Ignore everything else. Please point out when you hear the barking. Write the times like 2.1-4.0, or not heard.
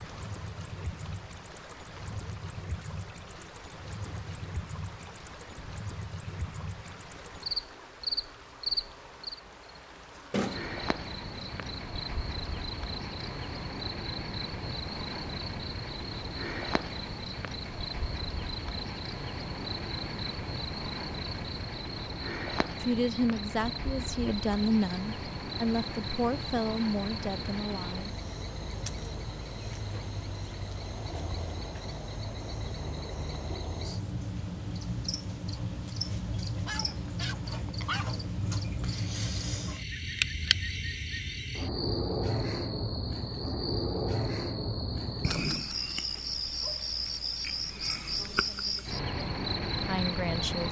36.5-38.2.